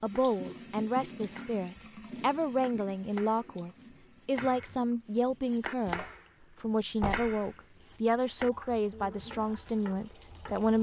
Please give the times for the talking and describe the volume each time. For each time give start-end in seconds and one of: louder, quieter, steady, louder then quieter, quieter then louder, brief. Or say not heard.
0.0-10.7 steady.